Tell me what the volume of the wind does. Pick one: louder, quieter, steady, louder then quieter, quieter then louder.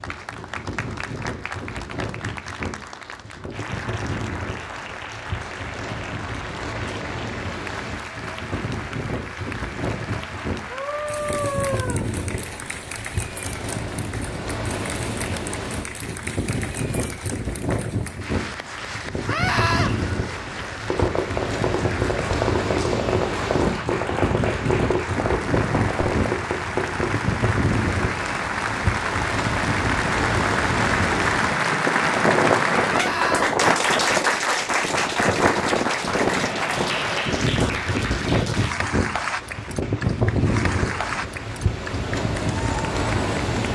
louder.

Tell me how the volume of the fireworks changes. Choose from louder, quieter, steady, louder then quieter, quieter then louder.
steady.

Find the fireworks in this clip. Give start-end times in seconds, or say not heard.
20.9-27.1.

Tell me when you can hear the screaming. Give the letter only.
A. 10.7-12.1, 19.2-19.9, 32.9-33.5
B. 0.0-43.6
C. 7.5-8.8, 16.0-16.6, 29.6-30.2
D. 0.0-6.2
A.